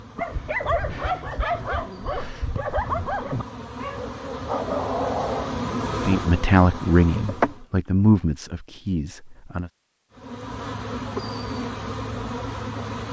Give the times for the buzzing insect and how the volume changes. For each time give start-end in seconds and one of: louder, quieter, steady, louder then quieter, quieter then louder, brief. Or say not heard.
0.0-7.7 louder
10.1-13.0 brief.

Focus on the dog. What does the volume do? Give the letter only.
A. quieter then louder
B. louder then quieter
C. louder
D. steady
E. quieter
A.